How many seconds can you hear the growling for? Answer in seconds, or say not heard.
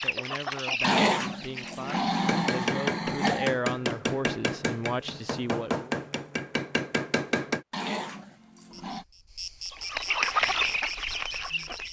4 s.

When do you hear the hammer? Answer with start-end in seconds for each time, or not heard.
2.1-7.7.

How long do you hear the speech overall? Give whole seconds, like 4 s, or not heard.
6 s.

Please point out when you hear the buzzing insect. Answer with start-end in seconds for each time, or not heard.
8.7-11.8.